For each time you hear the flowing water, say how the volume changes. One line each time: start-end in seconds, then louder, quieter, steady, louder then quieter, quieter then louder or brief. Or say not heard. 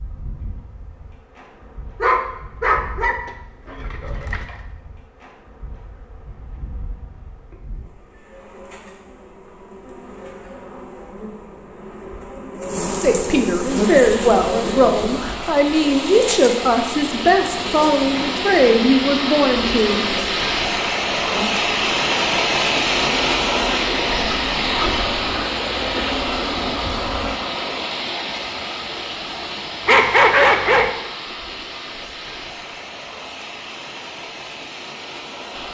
13.6-35.6 louder then quieter.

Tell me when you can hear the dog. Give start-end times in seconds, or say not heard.
2.0-4.5, 29.9-30.9.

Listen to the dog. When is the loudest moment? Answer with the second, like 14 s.
30 s.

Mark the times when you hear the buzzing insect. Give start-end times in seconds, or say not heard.
0.0-27.4.